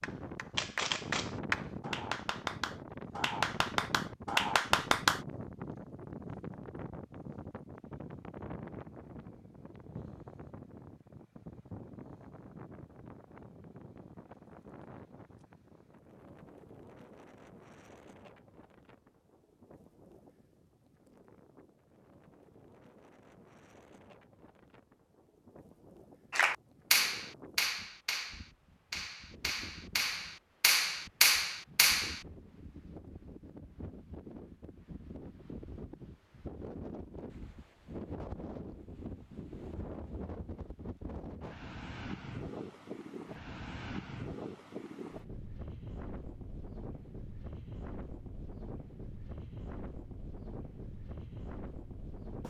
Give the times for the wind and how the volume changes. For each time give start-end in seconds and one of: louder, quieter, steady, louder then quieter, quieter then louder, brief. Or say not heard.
0.0-52.4 quieter then louder.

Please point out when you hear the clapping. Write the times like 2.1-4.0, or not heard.
0.0-5.2, 26.3-32.2.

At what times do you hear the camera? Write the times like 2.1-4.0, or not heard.
0.6-1.4.